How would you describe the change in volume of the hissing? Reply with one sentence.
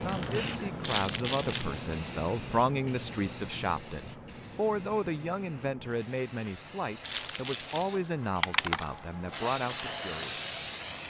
The volume of the hissing goes down, then up.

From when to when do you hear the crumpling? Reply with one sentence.
You can hear the crumpling from 0.8 to 1.8 s and from 7.0 to 8.9 s.